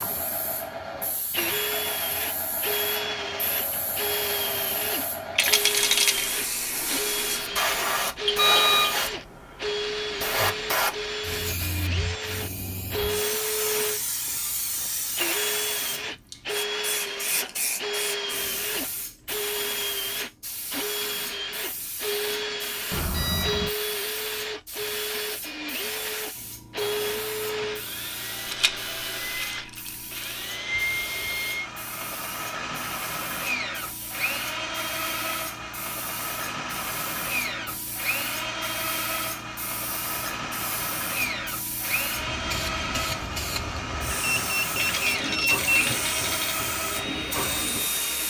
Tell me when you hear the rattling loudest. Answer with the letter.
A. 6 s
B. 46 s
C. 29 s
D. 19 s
A.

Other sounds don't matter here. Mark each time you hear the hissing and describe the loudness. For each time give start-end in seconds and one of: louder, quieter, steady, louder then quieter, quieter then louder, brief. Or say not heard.
0.0-48.2 quieter then louder.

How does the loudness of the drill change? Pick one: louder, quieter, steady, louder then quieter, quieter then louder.
steady.